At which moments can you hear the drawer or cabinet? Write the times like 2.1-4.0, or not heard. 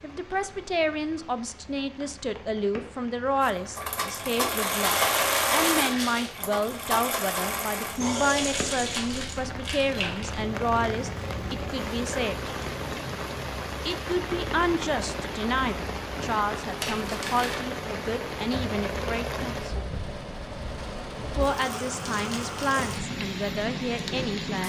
not heard.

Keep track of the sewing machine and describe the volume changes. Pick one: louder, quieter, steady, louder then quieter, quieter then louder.
quieter.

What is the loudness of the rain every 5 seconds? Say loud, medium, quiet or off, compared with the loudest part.
quiet, medium, loud, loud, loud.